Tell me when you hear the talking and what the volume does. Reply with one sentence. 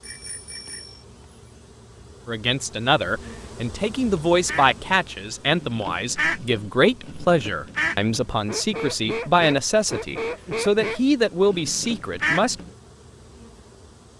The talking can be heard from 2.2 to 12.6 s, at a steady volume.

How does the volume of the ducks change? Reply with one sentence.
The volume of the ducks goes up.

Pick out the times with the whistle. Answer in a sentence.
You can't hear the whistle here.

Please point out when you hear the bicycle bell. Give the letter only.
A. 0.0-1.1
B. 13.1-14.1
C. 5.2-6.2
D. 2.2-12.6
A.